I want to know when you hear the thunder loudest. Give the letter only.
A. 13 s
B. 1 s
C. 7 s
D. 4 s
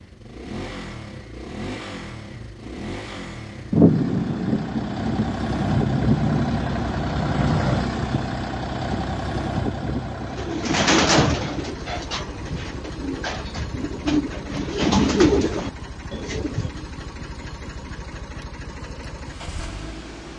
D.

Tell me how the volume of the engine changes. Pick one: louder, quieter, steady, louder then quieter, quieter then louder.
louder then quieter.